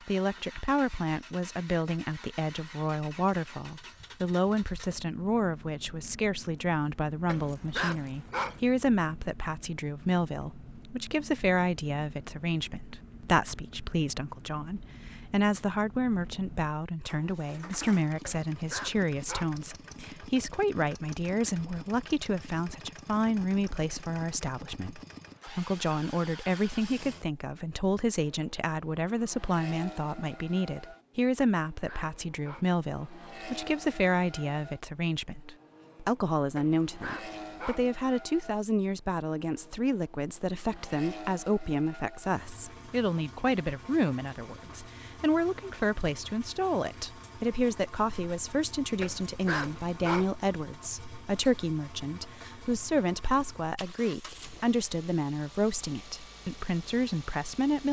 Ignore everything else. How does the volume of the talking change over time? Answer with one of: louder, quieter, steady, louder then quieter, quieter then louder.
steady.